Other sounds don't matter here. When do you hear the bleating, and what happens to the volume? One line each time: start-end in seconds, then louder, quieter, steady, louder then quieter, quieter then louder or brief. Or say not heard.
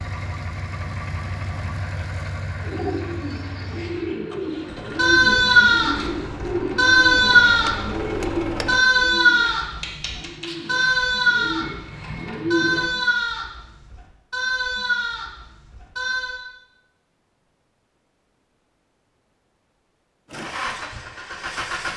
5.0-16.4 quieter.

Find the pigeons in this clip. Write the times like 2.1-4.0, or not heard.
2.5-12.9.